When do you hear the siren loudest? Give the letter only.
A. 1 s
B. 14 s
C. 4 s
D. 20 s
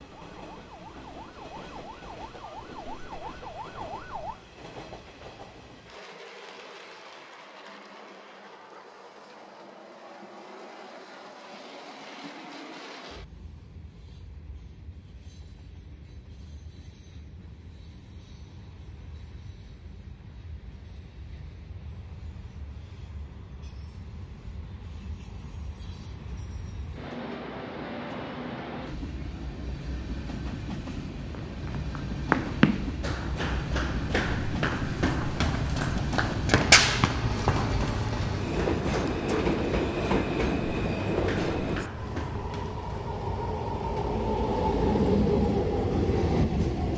C.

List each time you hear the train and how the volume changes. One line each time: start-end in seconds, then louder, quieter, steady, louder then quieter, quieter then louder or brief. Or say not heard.
0.0-46.9 louder.